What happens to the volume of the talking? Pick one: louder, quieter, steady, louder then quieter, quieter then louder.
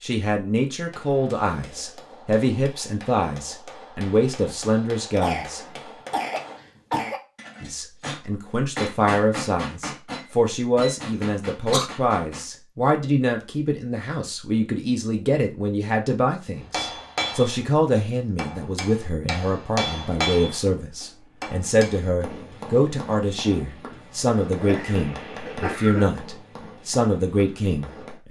steady.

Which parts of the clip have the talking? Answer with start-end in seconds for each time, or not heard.
0.0-5.6, 7.6-28.2.